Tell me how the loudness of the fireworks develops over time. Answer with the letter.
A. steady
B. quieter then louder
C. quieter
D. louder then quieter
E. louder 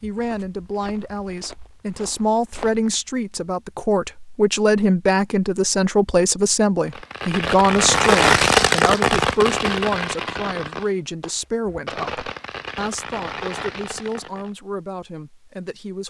C.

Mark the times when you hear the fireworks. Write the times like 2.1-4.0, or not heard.
6.8-14.5.